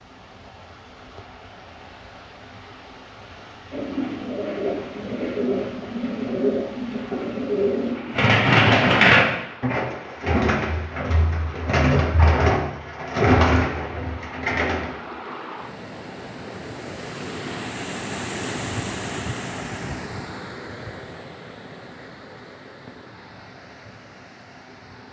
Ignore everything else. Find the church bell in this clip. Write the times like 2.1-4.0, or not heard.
not heard.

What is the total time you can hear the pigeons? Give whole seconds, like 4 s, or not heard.
11 s.